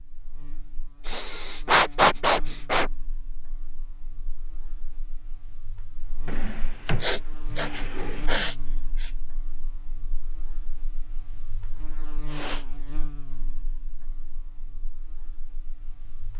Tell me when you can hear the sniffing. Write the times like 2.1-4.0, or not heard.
1.1-2.9, 7.0-9.1, 12.2-12.7.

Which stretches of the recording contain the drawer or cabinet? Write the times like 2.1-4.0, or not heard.
6.2-8.3.